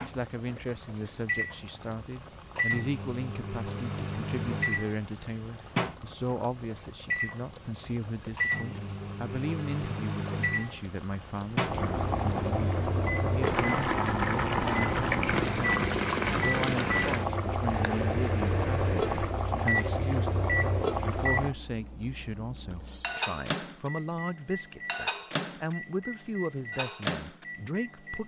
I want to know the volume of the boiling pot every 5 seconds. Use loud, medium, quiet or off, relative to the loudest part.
quiet, quiet, loud, loud, loud, off.